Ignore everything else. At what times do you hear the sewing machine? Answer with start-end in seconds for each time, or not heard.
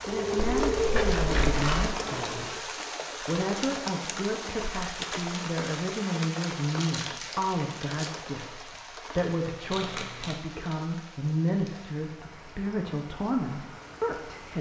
0.0-2.6.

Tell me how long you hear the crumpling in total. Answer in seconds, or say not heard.
4 s.